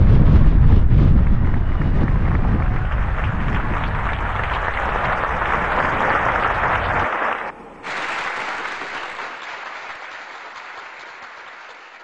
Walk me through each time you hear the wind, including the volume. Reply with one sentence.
The wind can be heard from 0.0 to 7.1 s, getting quieter.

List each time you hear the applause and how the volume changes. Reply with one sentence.
The applause can be heard from 0.0 to 12.0 s, getting louder then quieter.